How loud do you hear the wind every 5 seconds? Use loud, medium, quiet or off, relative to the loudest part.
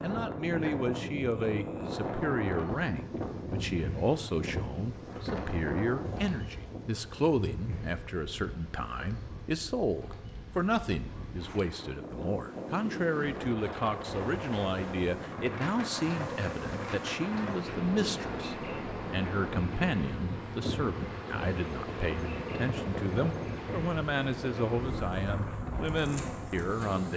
loud, medium, loud, loud, loud, loud.